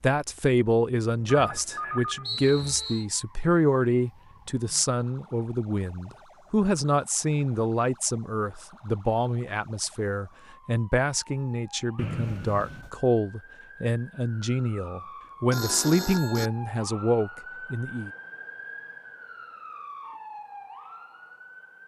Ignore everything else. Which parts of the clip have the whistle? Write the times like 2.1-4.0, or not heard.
2.2-3.0, 11.9-12.9.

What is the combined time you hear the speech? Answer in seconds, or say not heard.
18 s.